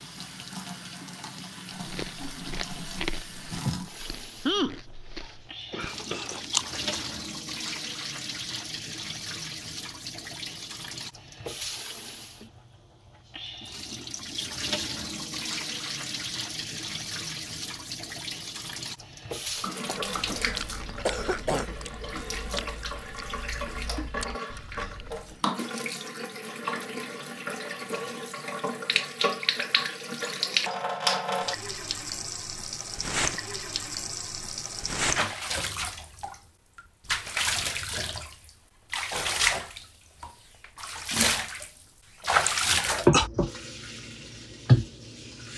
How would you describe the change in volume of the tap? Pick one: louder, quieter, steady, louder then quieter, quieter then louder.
louder.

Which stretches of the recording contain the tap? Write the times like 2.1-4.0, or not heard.
0.0-45.5.